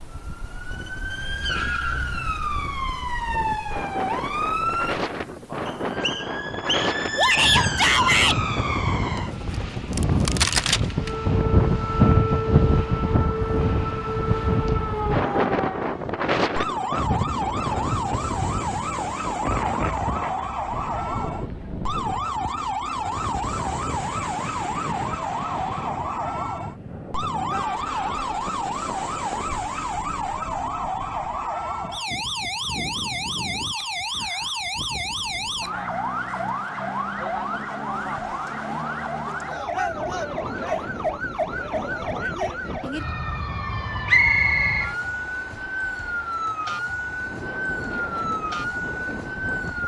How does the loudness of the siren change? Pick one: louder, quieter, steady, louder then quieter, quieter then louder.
steady.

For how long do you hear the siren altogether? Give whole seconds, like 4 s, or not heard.
50 s.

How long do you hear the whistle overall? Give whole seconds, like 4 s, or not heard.
2 s.